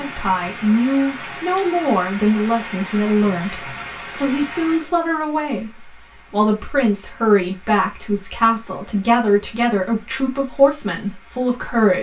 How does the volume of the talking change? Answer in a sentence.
The volume of the talking stays about the same.